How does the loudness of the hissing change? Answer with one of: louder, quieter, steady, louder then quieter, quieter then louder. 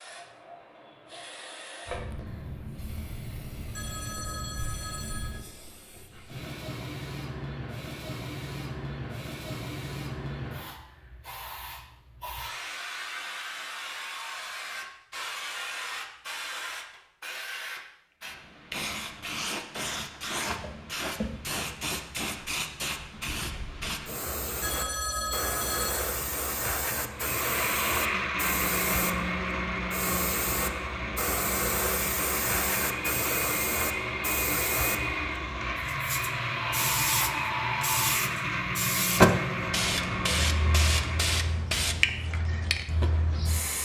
louder.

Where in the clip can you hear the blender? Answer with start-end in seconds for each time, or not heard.
27.1-41.6.